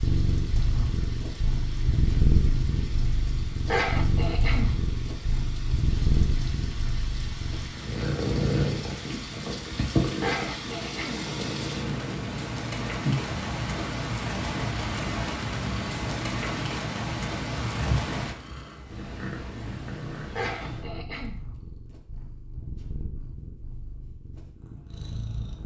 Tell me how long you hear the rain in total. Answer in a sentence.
You can hear the rain for 18 seconds altogether.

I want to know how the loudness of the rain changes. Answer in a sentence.
The loudness of the rain goes up.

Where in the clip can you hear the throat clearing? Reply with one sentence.
The throat clearing can be heard from 3.6 to 4.8 s, from 10.2 to 11.3 s and from 20.4 to 21.4 s.